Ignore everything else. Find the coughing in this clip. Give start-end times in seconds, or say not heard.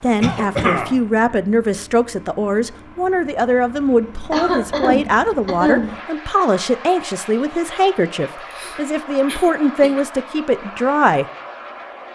0.2-0.9, 4.3-5.9, 8.3-10.1.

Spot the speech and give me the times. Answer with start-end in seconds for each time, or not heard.
0.0-11.2.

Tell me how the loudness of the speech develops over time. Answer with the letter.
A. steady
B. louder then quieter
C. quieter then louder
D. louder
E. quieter
A.